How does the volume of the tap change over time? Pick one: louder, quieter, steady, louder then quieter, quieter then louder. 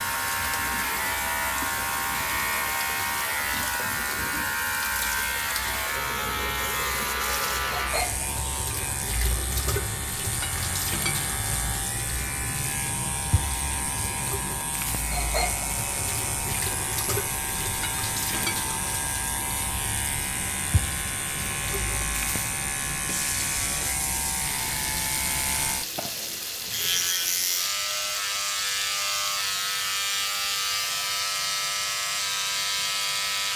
steady.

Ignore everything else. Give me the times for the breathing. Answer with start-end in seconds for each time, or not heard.
not heard.